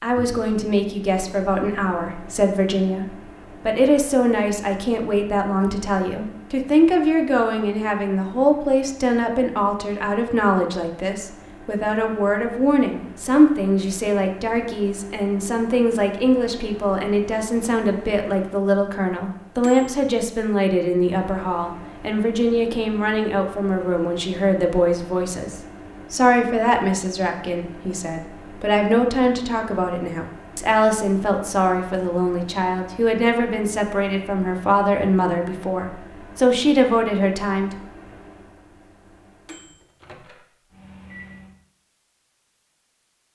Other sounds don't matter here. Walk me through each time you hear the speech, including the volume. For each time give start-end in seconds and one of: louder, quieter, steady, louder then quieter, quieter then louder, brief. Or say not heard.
0.0-37.7 steady.